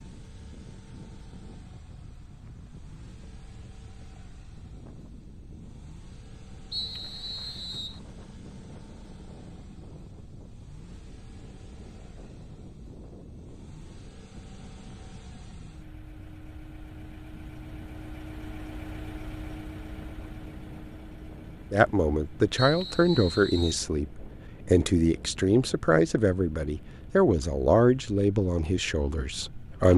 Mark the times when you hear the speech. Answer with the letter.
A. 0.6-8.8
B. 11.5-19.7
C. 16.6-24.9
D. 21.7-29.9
D.